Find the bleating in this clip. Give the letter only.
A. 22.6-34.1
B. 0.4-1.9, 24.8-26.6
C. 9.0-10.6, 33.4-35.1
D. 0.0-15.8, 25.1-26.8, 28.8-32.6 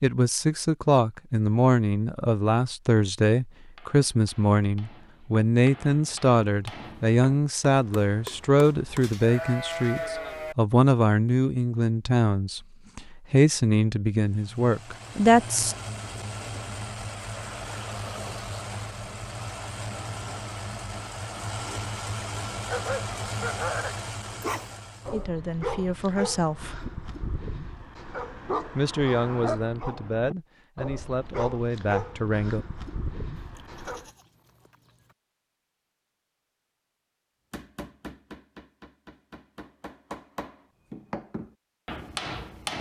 C.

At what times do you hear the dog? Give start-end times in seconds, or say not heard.
22.6-34.1.